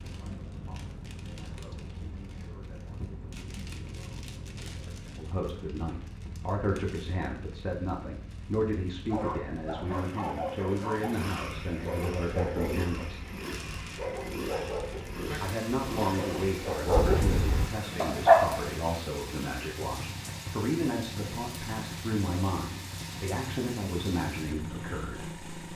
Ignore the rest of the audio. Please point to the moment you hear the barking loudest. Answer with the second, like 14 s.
18 s.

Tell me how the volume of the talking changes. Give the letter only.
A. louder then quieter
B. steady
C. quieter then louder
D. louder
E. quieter
D.